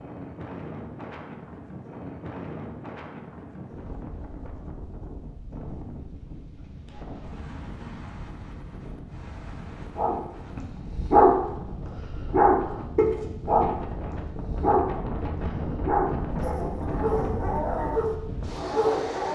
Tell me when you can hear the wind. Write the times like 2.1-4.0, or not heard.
0.0-19.3.